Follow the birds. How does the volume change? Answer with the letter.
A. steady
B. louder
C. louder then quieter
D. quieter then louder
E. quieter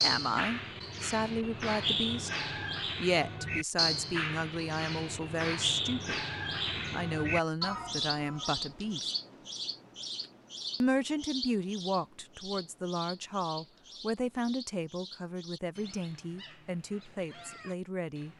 E.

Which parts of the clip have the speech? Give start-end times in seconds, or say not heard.
0.0-2.3, 3.0-6.2, 6.9-9.1, 10.8-18.3.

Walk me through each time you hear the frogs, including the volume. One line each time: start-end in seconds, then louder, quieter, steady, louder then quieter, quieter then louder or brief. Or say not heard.
not heard.